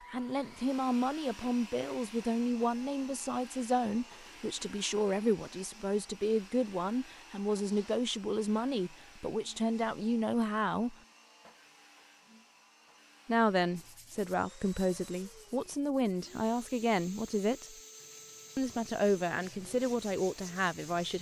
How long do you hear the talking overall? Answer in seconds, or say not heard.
18 s.